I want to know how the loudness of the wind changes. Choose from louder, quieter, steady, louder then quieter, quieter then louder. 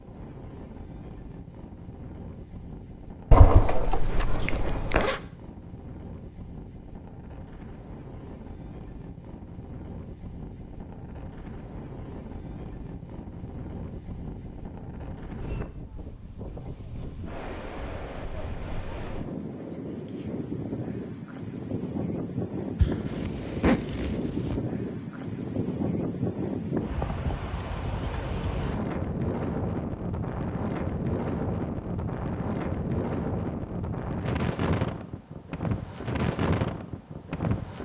louder.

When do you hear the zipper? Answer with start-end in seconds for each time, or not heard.
3.3-5.2, 22.8-24.6.